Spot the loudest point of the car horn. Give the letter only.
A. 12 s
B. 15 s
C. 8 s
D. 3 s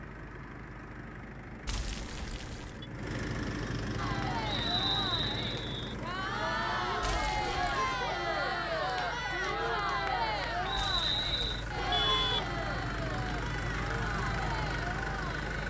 A.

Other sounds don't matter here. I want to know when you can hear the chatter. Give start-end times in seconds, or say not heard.
4.0-15.6.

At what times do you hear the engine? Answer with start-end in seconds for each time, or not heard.
0.0-15.6.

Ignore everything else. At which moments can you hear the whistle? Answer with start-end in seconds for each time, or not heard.
4.5-6.0, 10.7-11.7.